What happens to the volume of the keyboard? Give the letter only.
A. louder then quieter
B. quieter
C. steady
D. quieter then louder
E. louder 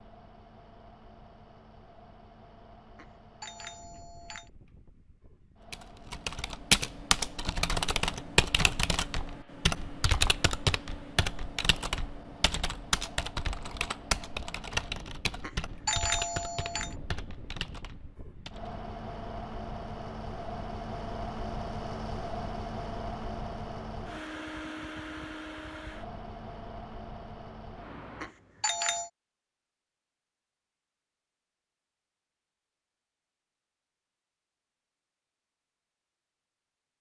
B.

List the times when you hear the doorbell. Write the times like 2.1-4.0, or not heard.
3.0-4.5, 15.4-16.9, 28.2-29.1.